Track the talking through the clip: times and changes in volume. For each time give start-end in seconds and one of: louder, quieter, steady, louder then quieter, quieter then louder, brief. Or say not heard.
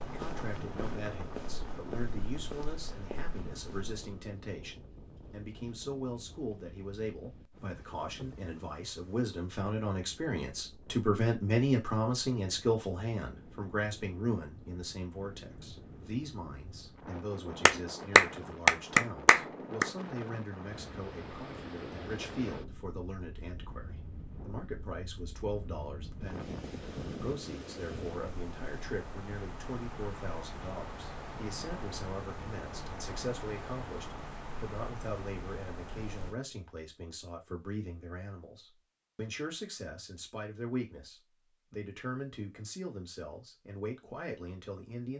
0.1-45.1 louder then quieter.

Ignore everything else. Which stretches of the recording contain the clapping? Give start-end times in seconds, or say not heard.
17.6-19.9.